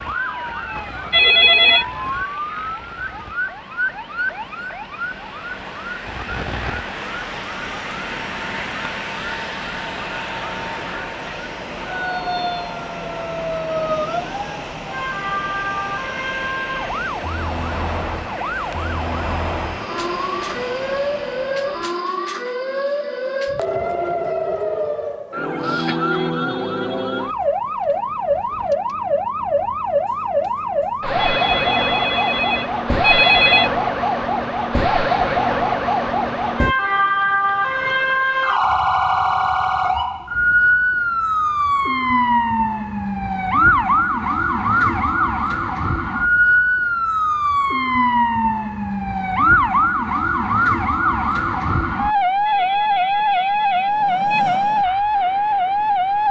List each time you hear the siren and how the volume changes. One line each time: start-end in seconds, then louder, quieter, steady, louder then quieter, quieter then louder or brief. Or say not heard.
0.0-56.2 louder.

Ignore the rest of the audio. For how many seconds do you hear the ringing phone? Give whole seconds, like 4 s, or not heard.
5 s.